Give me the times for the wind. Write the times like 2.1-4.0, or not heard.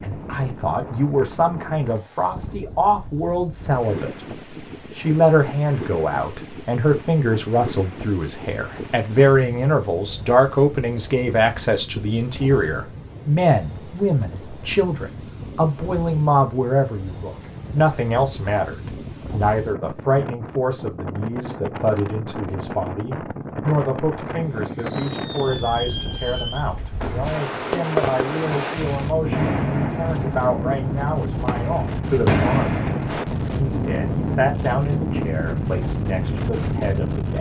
0.0-37.3.